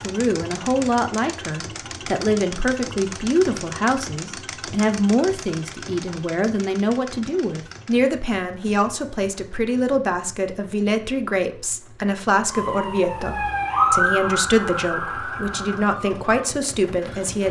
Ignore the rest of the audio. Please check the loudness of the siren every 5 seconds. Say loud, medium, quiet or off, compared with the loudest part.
off, off, loud, medium.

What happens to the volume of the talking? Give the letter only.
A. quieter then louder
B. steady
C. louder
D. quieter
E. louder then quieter
B.